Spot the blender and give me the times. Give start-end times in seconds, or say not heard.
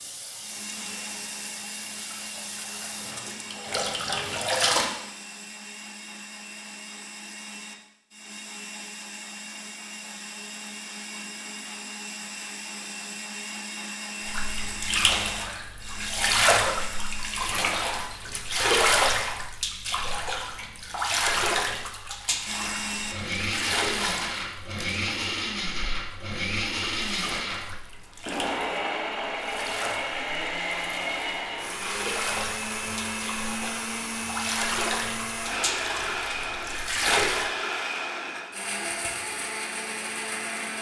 0.4-17.6, 22.4-40.7.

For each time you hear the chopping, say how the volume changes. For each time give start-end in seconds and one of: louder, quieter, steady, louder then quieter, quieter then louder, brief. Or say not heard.
not heard.